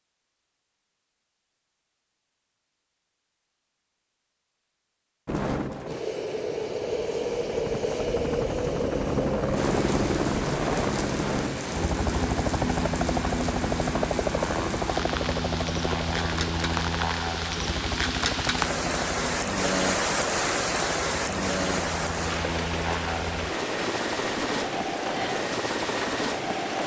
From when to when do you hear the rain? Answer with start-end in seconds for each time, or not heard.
9.6-26.8.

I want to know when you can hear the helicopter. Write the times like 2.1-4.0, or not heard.
5.2-26.8.